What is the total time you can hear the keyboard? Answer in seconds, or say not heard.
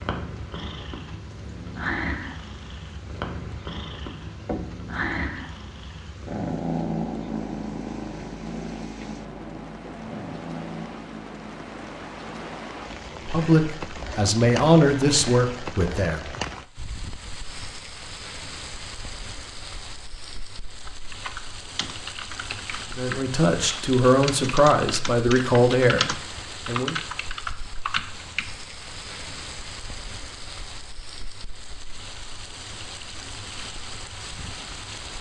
8 s.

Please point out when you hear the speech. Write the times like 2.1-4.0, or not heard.
13.1-16.4, 22.9-26.9.